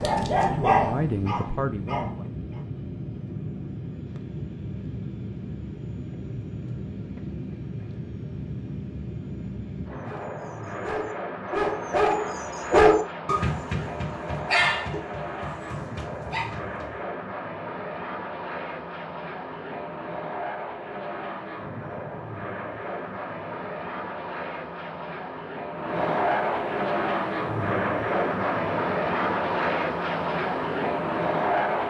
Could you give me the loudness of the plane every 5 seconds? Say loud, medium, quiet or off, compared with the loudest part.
medium, medium, medium, medium, medium, loud, loud.